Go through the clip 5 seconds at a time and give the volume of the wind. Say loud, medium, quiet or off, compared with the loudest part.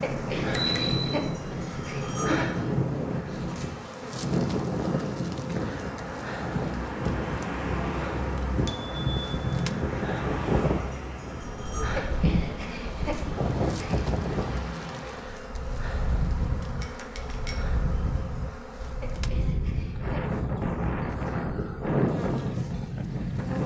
loud, loud, loud, medium, loud.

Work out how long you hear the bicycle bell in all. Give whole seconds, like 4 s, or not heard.
3 s.